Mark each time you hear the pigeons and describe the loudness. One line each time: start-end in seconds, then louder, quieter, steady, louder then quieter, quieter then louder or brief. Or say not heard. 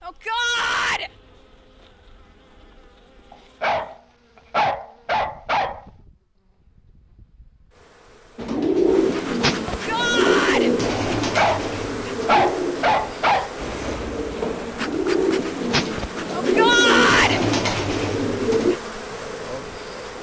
8.3-18.8 quieter then louder.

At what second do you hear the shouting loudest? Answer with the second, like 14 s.
17 s.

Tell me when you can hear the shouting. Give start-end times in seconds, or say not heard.
0.0-1.1, 9.7-10.7, 16.3-17.4.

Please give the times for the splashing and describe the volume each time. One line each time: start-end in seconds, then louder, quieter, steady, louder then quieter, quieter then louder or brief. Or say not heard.
not heard.